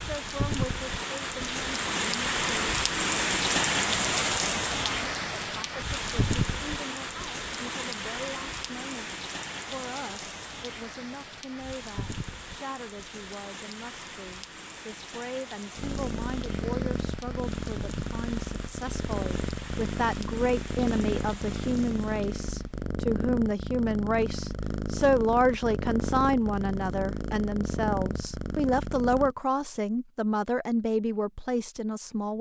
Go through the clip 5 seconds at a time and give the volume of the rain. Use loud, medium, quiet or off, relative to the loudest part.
loud, medium, quiet, quiet, quiet, off, off.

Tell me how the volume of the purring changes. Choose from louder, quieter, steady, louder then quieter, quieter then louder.
steady.